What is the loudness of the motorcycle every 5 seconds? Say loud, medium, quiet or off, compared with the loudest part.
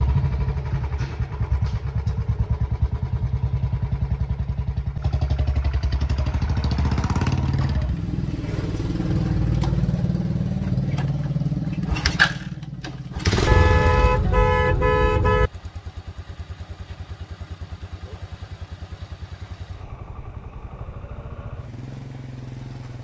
loud, loud, loud, quiet, quiet.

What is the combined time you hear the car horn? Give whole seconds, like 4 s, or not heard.
2 s.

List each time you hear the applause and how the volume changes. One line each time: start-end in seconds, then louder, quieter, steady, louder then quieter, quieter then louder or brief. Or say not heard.
not heard.